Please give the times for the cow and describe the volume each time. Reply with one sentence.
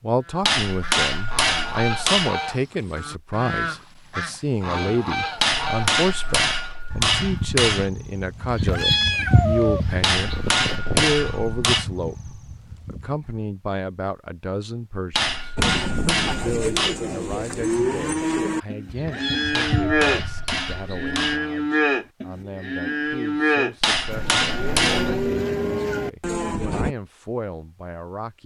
You can hear the cow from 15.6 to 26.9 s, at a steady volume.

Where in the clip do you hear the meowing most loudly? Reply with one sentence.
The loudest moment of the meowing is at 9 seconds.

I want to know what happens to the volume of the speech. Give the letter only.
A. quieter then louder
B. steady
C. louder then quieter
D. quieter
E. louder
D.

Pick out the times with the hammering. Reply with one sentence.
You can hear the hammering from 0.4 to 2.4 s, from 5.3 to 7.9 s, from 10.0 to 11.8 s, from 15.1 to 16.9 s, from 19.5 to 21.4 s and from 23.8 to 25.3 s.